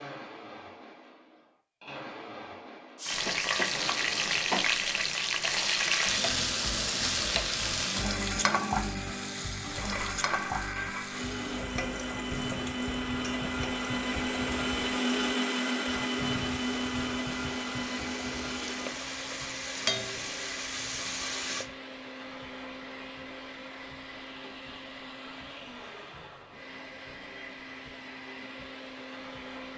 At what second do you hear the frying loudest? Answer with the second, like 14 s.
6 s.